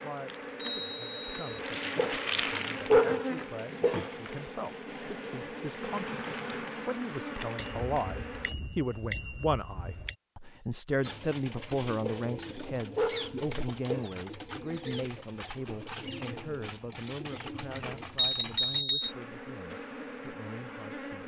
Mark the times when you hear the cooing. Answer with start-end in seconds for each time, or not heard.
11.0-18.9.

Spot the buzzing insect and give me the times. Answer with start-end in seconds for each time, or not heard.
0.0-8.5, 19.0-21.2.